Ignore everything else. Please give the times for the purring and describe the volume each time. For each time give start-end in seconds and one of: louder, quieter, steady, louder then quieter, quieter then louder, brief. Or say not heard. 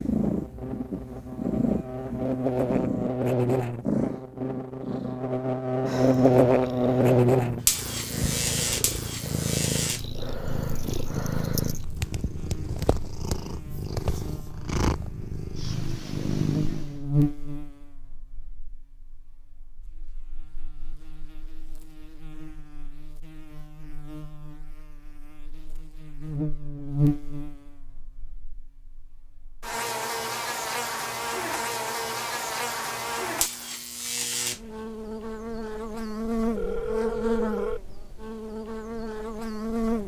0.0-17.0 steady.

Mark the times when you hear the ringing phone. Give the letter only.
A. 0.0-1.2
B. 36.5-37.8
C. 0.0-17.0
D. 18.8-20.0
B.